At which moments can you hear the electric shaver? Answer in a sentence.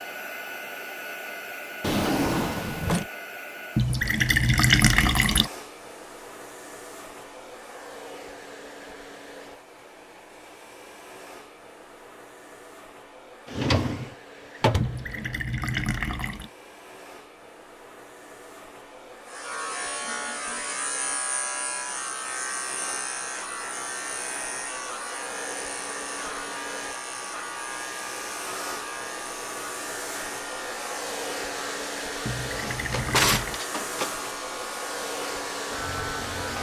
You can hear the electric shaver from 19.2 to 36.5 s.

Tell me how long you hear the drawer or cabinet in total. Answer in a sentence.
You can hear the drawer or cabinet for 4 seconds altogether.